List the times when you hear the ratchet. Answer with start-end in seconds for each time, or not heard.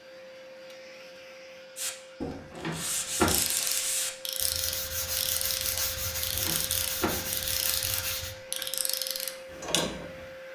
3.2-10.2.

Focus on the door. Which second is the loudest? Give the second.
3 s.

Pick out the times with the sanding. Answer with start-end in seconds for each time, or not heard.
1.8-8.3.